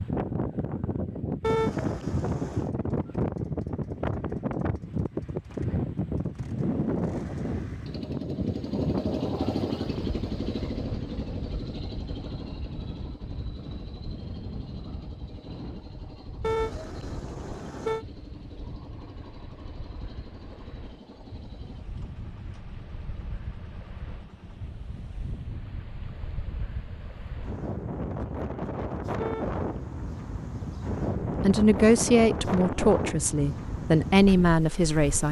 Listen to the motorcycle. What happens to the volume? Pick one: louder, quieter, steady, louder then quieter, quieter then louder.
louder then quieter.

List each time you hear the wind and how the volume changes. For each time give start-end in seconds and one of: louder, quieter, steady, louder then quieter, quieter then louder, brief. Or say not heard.
0.0-35.2 quieter then louder.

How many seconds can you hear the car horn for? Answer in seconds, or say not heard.
4 s.